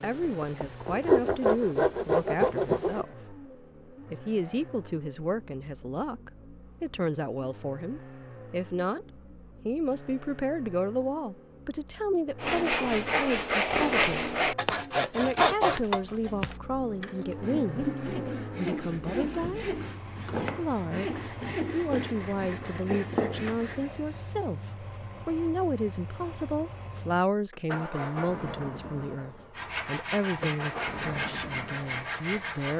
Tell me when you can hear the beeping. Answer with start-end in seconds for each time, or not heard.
not heard.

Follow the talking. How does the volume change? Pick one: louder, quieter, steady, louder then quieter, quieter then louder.
steady.